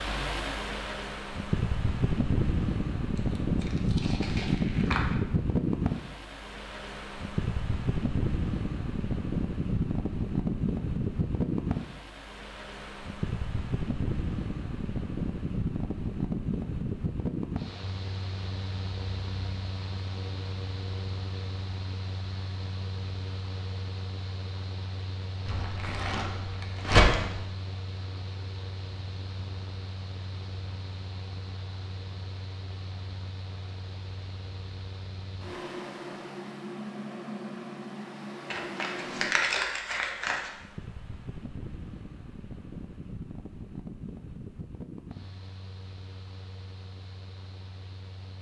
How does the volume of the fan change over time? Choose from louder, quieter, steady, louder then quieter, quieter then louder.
quieter.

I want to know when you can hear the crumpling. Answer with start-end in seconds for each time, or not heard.
3.1-5.2, 25.4-27.4, 38.5-40.5.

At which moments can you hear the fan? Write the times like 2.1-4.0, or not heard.
0.0-48.3.